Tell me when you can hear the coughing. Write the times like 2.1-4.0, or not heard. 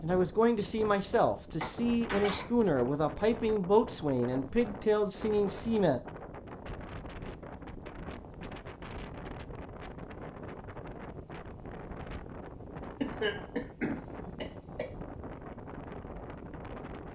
1.6-2.5, 13.0-14.9.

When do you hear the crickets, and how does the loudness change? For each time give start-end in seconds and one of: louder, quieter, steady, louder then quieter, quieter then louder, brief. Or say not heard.
not heard.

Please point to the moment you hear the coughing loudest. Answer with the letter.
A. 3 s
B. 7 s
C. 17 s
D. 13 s
D.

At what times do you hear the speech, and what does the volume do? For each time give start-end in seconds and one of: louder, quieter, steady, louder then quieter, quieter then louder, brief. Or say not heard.
0.0-6.0 steady.